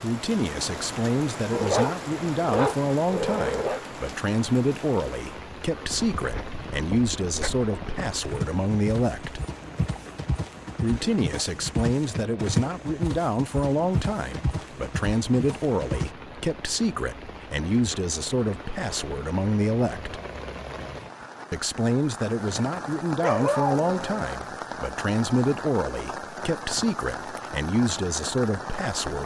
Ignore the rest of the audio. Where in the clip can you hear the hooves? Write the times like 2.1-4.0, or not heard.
5.8-16.1.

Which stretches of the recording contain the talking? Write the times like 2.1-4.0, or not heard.
0.0-9.4, 10.8-20.2, 21.5-29.2.